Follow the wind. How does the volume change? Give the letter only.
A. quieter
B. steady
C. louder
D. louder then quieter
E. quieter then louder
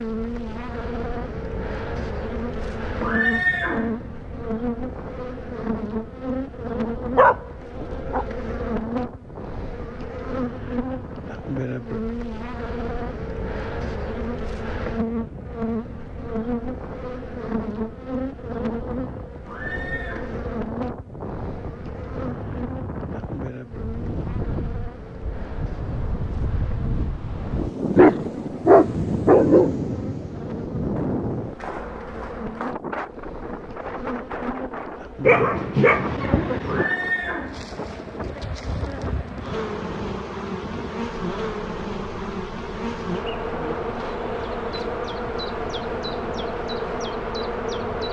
D.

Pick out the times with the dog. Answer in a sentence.
You can hear the dog from 7.2 to 8.2 s, from 27.9 to 29.8 s and from 35.2 to 36.9 s.